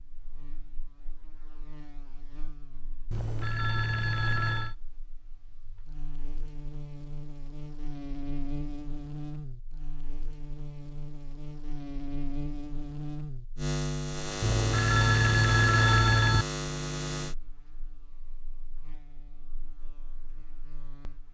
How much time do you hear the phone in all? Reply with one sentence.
The phone can be heard for 4 seconds in total.